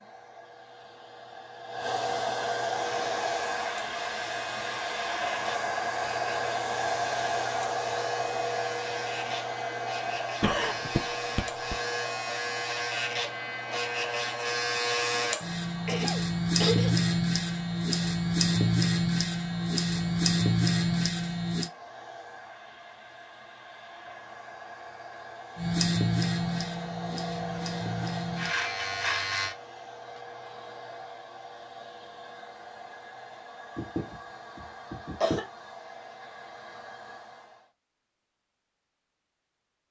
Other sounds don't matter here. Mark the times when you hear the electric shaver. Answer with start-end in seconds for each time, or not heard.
3.0-21.7, 25.6-29.6.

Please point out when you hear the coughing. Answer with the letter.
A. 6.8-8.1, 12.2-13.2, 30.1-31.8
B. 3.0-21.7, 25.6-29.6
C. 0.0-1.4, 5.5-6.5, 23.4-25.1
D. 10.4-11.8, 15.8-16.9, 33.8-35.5
D.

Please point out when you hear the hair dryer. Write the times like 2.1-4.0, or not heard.
0.0-37.7.